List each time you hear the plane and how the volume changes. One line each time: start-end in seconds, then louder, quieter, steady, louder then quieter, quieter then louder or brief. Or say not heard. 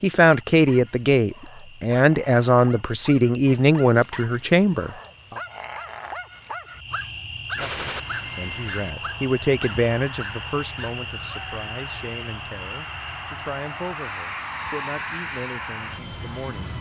7.8-16.7 louder.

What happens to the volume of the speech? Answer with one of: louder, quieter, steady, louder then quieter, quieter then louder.
quieter.